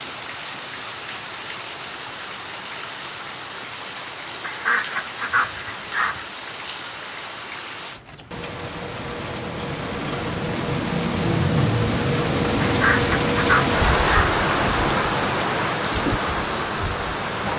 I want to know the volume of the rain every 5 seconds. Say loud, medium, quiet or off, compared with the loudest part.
medium, medium, loud, loud.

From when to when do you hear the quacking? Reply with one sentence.
You can hear the quacking from 4.4 to 6.2 s and from 12.6 to 14.3 s.